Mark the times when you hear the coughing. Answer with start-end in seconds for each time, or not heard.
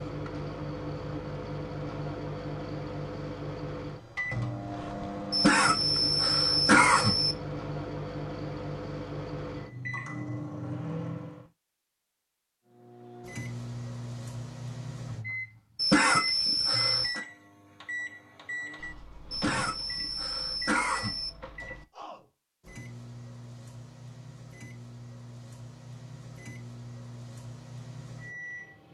5.3-7.3, 15.8-17.2, 19.3-21.3.